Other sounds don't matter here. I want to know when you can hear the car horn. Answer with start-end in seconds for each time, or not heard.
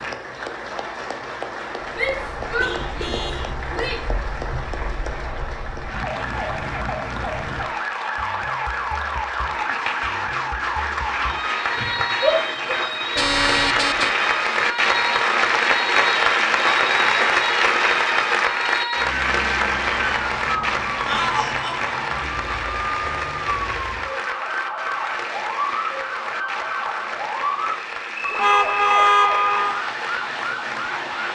2.5-3.5, 13.2-14.1, 28.4-29.9.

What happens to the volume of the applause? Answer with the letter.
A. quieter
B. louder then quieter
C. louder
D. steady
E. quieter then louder
B.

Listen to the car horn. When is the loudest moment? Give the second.
29 s.